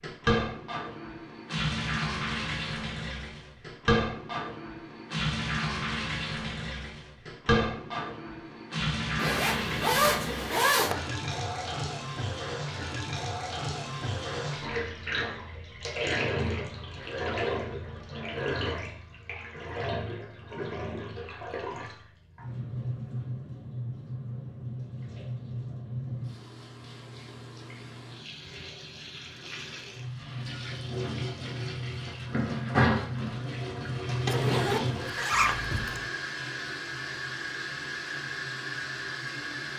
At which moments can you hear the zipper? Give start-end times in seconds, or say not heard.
9.2-10.9, 34.2-36.0.